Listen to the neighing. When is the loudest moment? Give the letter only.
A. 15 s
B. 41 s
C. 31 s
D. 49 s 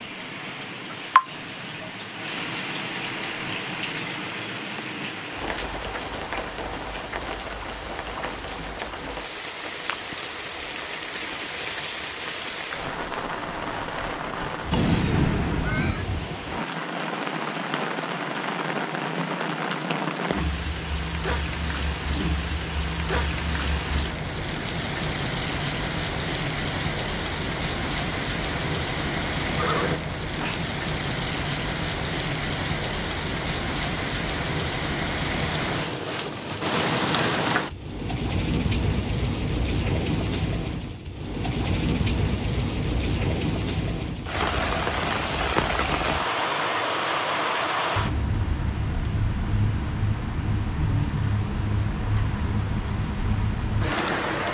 A.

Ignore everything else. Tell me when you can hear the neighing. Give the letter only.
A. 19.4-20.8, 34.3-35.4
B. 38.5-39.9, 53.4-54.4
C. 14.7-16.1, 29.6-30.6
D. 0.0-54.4
C.